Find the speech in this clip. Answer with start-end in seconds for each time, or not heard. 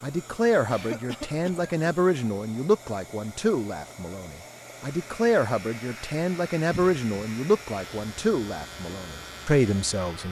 0.0-10.2.